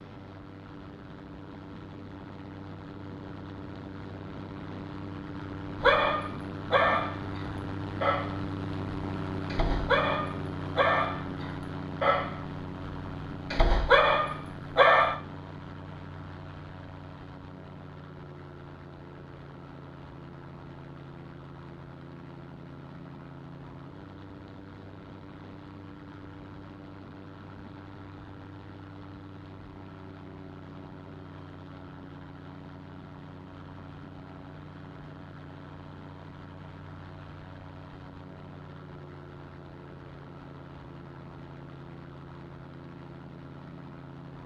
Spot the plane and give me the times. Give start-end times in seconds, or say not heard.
0.0-44.4.